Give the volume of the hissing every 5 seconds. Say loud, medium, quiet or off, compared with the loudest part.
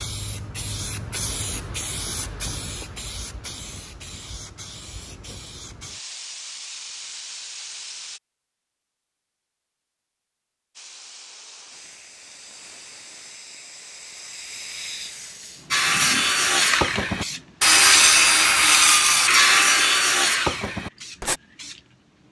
loud, medium, medium, loud, quiet.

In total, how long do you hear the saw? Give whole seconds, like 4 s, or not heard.
6 s.